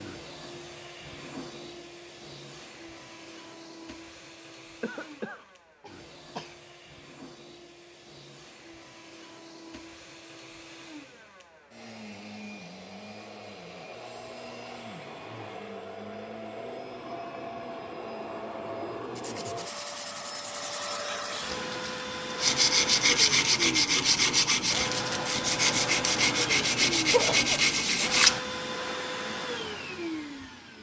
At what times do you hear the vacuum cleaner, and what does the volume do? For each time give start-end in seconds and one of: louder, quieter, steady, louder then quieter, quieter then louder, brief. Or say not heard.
0.0-30.7 louder.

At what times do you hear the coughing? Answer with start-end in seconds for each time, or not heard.
4.8-6.5, 27.1-27.6.